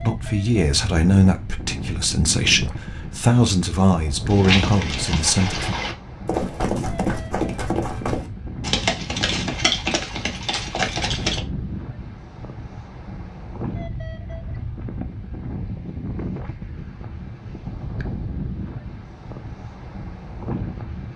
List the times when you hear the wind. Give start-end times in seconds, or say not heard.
0.0-21.1.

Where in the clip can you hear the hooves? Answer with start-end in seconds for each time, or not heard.
4.3-11.4.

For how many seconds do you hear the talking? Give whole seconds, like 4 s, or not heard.
6 s.